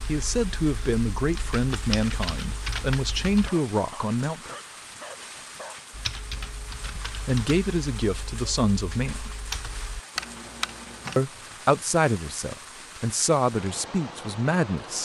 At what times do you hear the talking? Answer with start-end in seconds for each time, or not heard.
0.1-4.5, 7.0-9.3, 11.2-15.0.